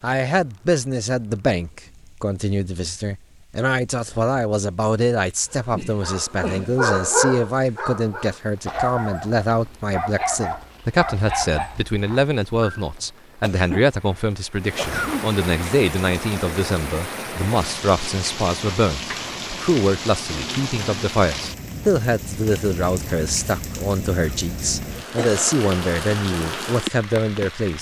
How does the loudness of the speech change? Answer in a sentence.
The volume of the speech stays about the same.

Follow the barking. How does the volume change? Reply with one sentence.
The loudness of the barking goes down.